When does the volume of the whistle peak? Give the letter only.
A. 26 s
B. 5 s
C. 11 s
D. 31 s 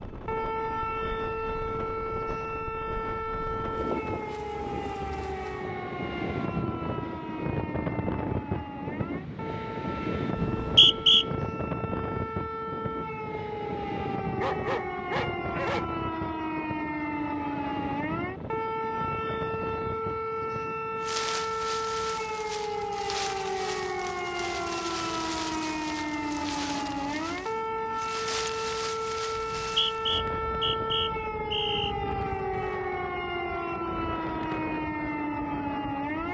C.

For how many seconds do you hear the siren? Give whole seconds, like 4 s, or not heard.
36 s.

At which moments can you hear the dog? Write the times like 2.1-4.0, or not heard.
14.3-15.9.